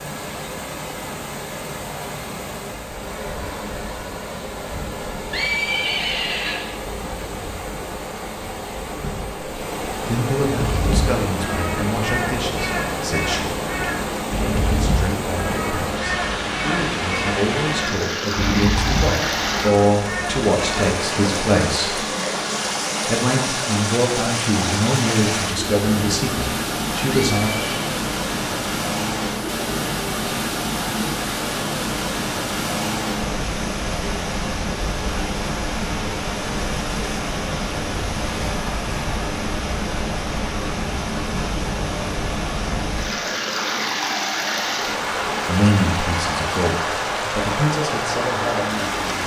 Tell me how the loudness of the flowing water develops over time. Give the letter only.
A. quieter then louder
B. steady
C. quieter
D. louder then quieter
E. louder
E.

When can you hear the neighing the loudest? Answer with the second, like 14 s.
6 s.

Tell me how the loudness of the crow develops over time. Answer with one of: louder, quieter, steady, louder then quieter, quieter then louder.
steady.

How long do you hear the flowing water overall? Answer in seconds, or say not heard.
49 s.